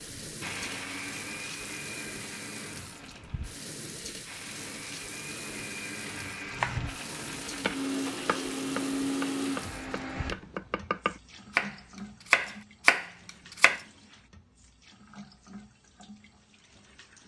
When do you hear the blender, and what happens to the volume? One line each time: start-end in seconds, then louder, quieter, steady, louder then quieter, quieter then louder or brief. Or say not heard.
0.0-10.3 quieter then louder.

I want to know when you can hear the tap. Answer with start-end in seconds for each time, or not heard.
0.0-17.2.